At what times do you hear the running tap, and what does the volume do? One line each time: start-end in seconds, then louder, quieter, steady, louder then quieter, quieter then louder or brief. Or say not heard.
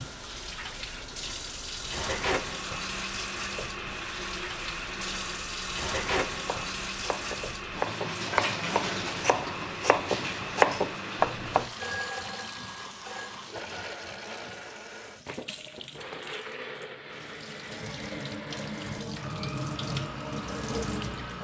0.0-21.4 quieter then louder.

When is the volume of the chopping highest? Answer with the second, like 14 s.
11 s.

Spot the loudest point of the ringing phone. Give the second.
12 s.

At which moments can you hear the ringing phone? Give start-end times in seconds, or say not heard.
11.8-13.4.